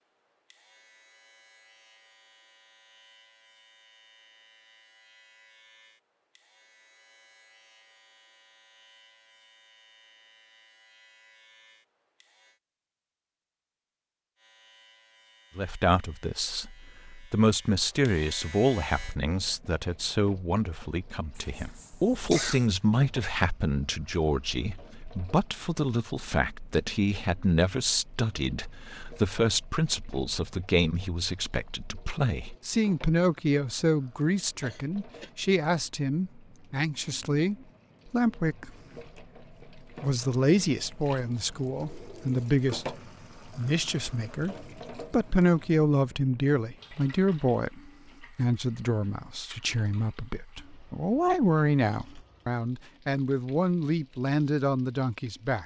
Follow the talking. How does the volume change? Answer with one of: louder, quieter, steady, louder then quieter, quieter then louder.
steady.